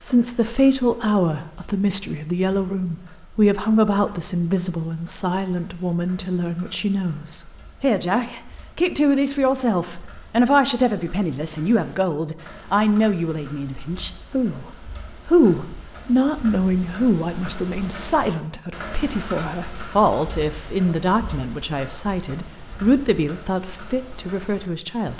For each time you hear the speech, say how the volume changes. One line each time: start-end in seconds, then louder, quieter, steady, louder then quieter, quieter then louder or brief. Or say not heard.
0.0-25.1 steady.